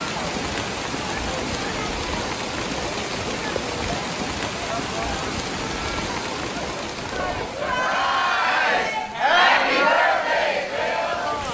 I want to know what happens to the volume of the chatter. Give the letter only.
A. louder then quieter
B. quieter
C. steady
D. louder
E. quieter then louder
D.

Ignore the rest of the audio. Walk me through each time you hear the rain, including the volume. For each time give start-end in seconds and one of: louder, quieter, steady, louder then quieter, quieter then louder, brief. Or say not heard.
0.0-11.4 quieter.